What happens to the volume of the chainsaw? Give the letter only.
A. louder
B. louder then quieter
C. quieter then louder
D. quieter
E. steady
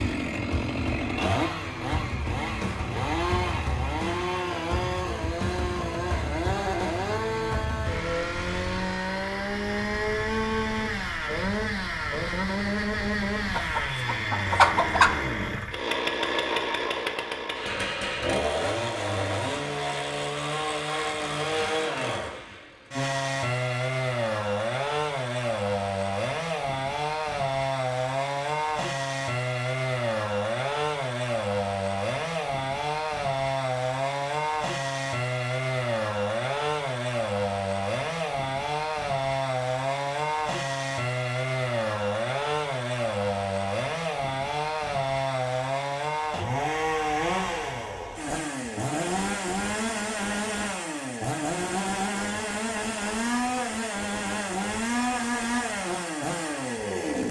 E.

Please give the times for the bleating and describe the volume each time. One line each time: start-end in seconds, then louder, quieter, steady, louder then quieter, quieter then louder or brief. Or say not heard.
not heard.